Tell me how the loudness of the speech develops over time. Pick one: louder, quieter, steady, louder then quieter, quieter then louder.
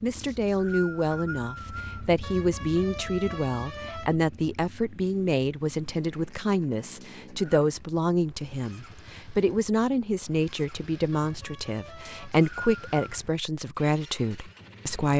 steady.